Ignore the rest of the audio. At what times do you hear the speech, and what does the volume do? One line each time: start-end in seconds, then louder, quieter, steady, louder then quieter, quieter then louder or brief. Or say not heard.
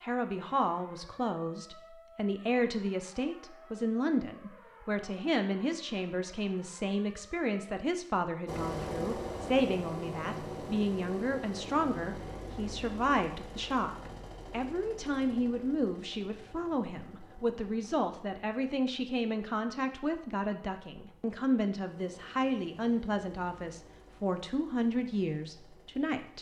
0.0-26.3 steady.